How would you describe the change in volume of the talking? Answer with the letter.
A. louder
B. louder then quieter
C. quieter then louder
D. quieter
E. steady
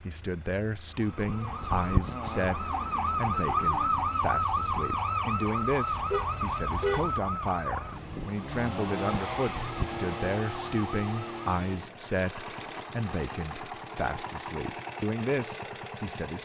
E.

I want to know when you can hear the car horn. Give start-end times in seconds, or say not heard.
5.9-7.2.